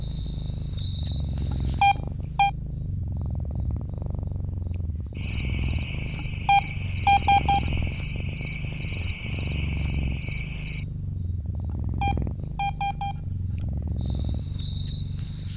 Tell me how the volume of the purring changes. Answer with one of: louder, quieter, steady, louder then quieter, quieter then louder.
steady.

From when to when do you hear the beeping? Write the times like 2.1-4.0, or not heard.
1.5-2.5, 6.2-7.8, 11.7-13.7.